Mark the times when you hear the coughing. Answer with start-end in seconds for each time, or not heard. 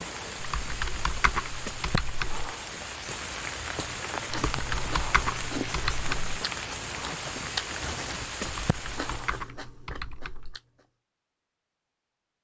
not heard.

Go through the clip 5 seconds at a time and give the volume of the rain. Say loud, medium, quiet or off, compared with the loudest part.
loud, loud, off.